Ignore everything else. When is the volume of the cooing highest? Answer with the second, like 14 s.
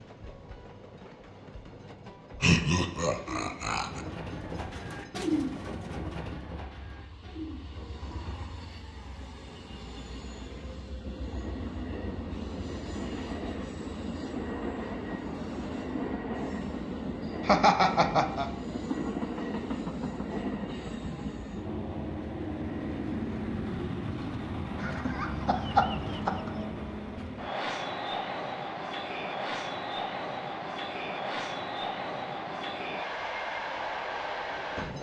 5 s.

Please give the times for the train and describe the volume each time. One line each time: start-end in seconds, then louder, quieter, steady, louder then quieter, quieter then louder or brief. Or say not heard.
0.0-34.9 louder.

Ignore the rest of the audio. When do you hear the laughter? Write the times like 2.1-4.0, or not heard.
2.4-4.0, 17.4-18.5, 24.8-26.5.